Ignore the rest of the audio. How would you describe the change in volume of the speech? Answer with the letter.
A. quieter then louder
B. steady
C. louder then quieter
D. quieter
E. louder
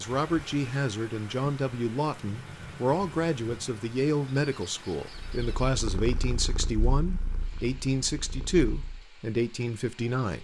B.